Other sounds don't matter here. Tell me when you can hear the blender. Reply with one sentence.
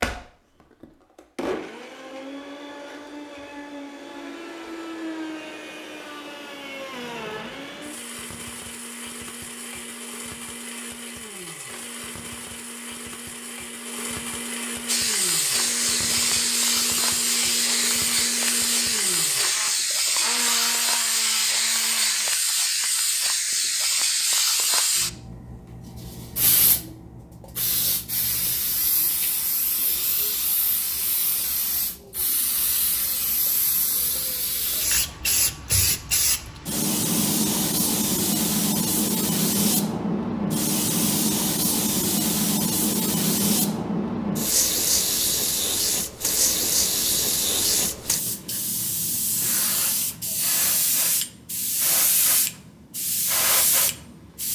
You can hear the blender from 0.0 to 22.3 s.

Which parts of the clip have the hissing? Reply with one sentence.
You can hear the hissing from 14.8 to 54.5 s.